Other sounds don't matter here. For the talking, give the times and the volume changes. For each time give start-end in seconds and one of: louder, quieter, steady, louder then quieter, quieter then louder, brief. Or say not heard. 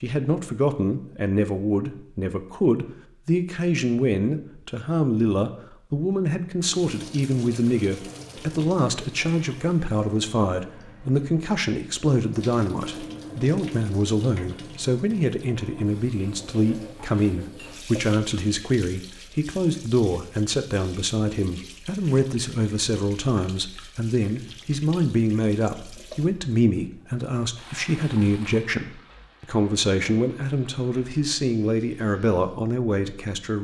0.0-33.5 steady.